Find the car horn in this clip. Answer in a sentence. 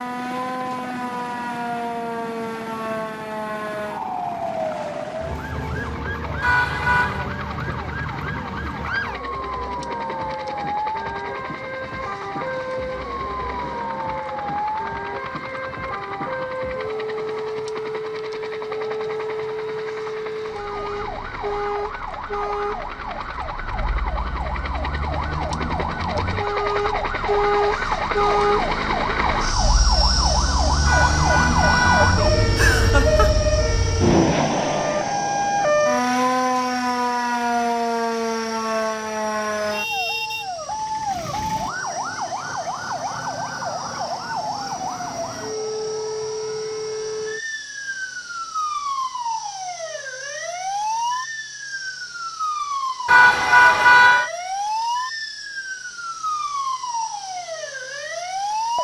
You can hear the car horn from 6.4 to 7.3 s, from 30.9 to 32.2 s and from 53.0 to 54.3 s.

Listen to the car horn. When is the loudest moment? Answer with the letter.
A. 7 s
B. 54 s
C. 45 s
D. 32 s
B.